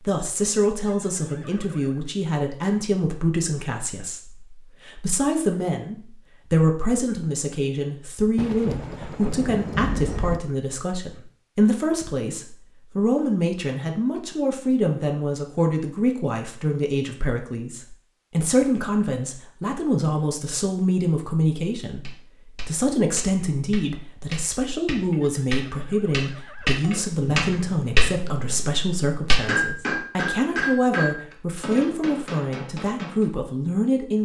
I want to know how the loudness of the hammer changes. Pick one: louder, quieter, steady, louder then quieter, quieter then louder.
louder then quieter.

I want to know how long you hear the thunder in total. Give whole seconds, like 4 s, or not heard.
4 s.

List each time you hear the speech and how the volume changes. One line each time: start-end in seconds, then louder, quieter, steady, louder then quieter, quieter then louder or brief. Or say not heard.
0.1-34.2 steady.